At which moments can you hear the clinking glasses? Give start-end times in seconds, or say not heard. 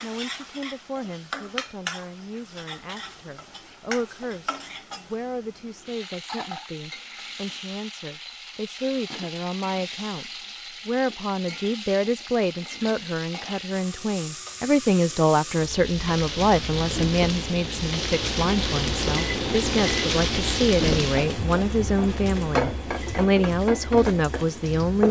not heard.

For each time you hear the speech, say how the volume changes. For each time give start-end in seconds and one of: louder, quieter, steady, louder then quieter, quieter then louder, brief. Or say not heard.
0.0-25.0 louder.